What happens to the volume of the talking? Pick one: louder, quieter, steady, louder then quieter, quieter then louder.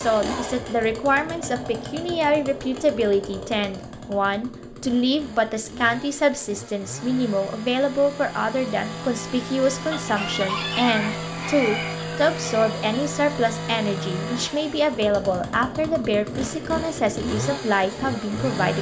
steady.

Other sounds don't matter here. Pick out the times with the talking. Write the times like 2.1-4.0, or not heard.
0.0-18.7.